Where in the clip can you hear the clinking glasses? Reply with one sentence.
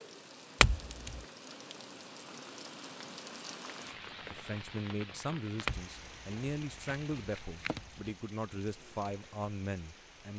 The clinking glasses can be heard from 0.6 to 1.2 s and from 5.7 to 8.1 s.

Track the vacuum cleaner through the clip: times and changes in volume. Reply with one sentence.
You can't hear the vacuum cleaner here.